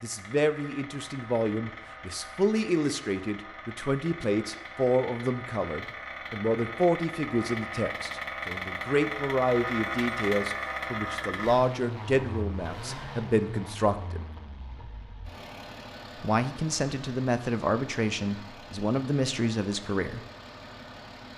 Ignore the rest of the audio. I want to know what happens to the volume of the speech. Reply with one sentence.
The loudness of the speech stays about the same.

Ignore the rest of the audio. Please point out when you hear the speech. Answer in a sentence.
The speech can be heard from 0.0 to 14.2 s and from 16.2 to 20.2 s.